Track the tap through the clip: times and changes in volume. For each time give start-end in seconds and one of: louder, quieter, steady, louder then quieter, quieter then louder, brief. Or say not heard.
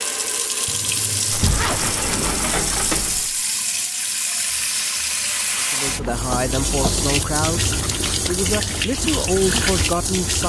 0.0-10.4 steady.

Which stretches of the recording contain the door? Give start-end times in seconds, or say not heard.
1.3-3.4, 6.0-7.0.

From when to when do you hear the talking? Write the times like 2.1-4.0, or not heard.
5.6-10.4.